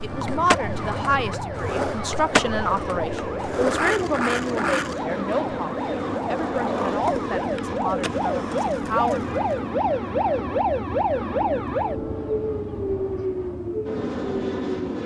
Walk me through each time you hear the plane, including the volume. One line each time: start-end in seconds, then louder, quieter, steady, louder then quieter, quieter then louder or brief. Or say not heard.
0.0-15.0 steady.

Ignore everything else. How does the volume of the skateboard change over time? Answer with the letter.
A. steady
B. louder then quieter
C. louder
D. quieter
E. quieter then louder
D.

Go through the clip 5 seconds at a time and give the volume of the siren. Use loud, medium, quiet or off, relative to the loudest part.
medium, loud, loud.